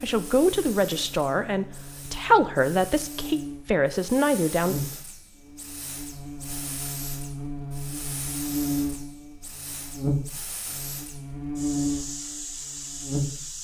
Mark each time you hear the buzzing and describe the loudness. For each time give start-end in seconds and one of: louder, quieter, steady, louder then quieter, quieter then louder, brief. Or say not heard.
0.0-13.6 louder.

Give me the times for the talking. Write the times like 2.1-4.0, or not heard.
0.0-4.8.